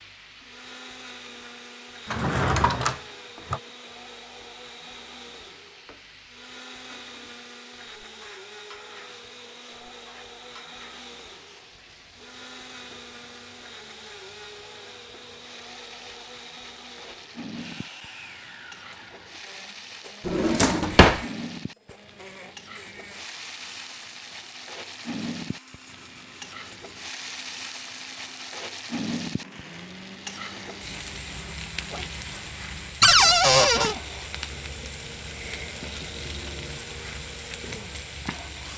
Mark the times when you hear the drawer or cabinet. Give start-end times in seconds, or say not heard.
2.1-3.6, 20.2-21.2, 33.0-34.0.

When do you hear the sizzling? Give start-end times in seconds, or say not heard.
0.0-38.7.